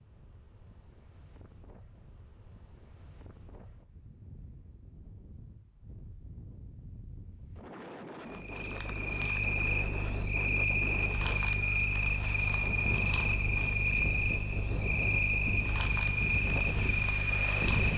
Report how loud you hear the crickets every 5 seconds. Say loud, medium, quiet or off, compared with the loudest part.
off, loud, loud, loud.